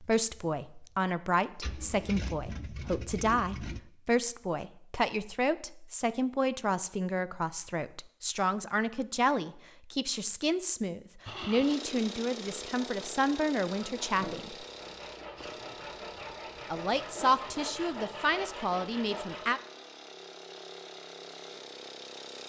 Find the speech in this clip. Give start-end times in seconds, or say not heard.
0.0-14.7, 16.7-19.6.